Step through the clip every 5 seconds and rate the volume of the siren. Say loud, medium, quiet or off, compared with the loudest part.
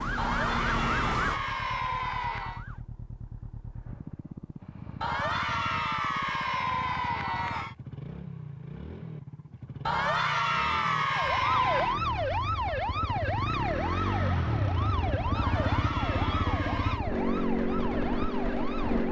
loud, off, loud, medium.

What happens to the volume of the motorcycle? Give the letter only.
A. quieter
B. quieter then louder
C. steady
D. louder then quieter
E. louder
E.